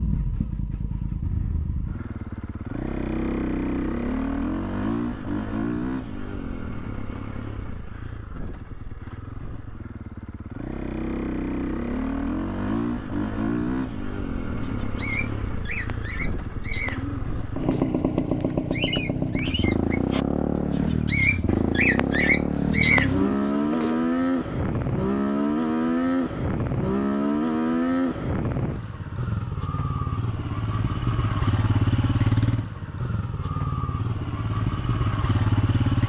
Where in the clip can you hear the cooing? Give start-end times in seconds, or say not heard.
14.4-24.0.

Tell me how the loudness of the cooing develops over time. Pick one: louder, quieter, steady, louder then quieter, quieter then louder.
louder.